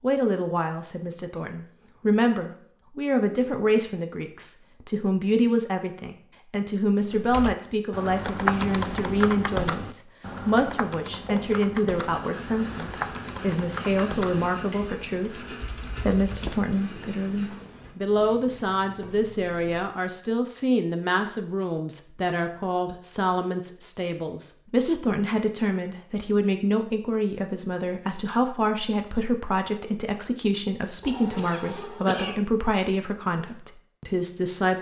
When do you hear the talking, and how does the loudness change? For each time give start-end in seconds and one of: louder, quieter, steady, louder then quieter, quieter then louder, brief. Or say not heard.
0.0-34.7 steady.